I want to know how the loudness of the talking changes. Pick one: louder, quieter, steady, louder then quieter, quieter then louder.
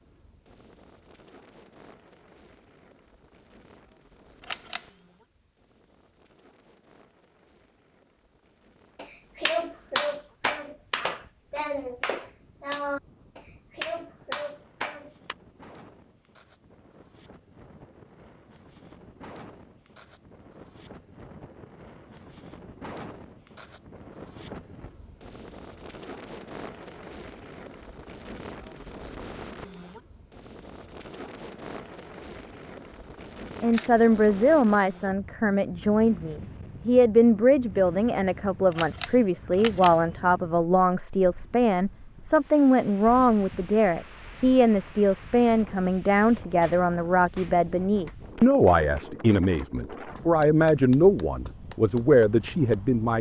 steady.